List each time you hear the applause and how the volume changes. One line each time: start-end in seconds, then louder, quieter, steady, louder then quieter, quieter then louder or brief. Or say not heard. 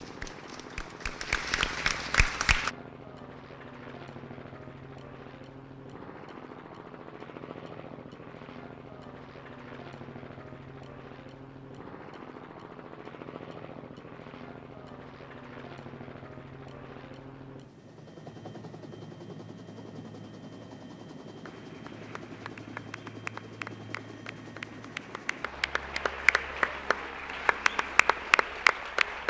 0.0-2.7 brief
21.4-29.2 louder.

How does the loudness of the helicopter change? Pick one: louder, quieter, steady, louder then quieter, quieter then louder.
steady.